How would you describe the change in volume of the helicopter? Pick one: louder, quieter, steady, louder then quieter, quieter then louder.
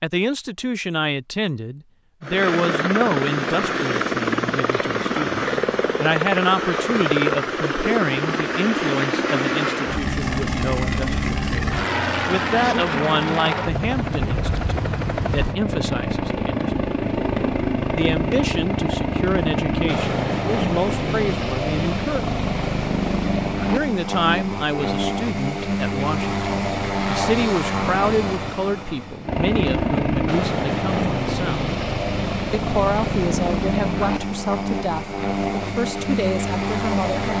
steady.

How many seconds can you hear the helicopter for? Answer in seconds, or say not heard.
35 s.